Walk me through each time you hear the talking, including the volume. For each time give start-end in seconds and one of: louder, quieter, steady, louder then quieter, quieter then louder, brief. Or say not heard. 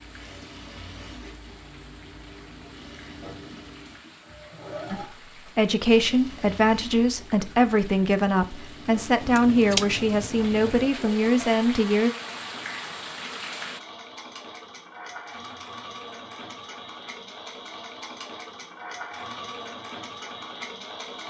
4.9-12.1 steady.